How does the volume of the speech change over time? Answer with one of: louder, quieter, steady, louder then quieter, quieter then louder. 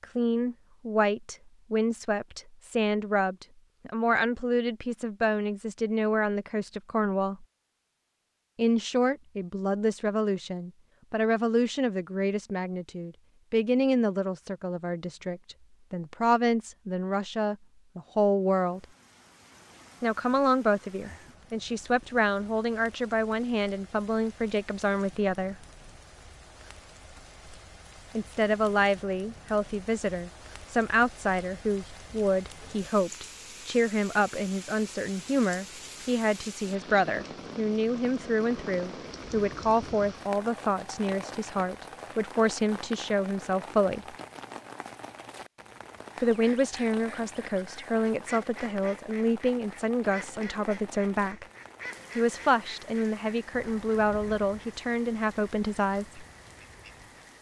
steady.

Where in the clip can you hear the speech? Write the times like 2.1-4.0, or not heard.
0.0-7.5, 8.6-18.9, 20.0-25.6, 28.1-44.0, 46.2-51.5, 52.1-56.2.